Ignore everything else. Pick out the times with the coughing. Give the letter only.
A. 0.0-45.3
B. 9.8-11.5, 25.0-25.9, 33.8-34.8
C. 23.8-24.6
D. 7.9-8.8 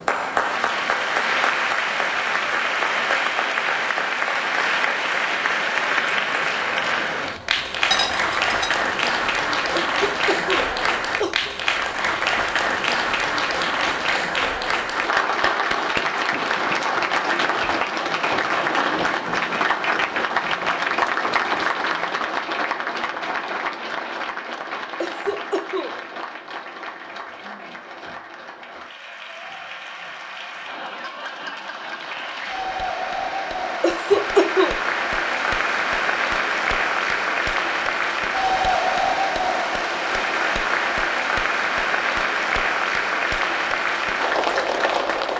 B.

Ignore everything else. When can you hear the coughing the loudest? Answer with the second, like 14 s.
34 s.